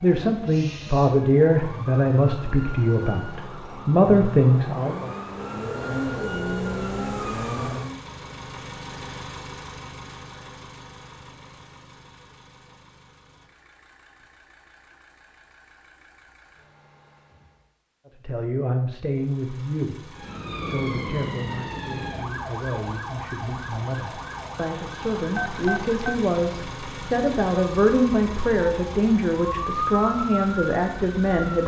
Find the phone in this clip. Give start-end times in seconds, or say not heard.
25.4-26.2.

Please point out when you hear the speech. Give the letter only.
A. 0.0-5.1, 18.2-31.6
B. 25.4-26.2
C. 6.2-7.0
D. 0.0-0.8
A.